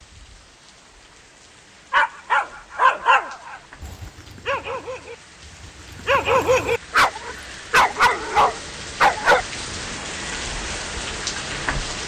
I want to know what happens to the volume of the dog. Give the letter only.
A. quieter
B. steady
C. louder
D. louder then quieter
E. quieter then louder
E.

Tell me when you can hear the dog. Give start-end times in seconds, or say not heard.
1.9-9.4.